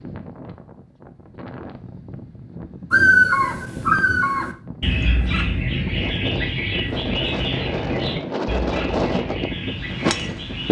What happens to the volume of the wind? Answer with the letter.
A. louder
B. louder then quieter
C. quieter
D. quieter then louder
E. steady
A.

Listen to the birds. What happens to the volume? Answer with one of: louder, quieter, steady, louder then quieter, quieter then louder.
quieter.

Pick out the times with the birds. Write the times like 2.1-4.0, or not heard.
2.9-10.6.